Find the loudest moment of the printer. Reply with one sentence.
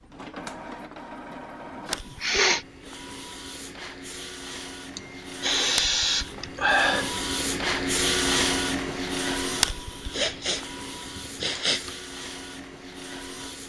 The volume of the printer peaks at 8 seconds.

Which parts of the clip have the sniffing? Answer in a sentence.
You can hear the sniffing from 1.8 to 2.6 s, from 5.0 to 7.2 s and from 10.1 to 11.9 s.